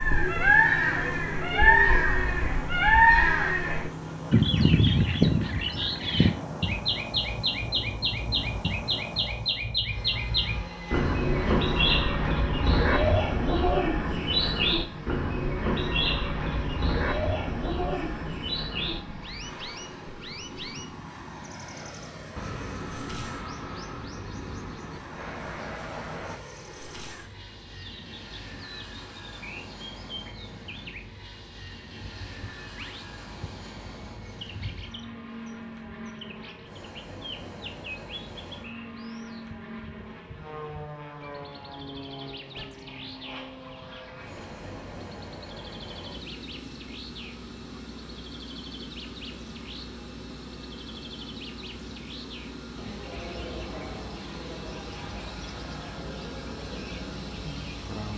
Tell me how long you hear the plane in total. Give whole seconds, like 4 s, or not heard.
58 s.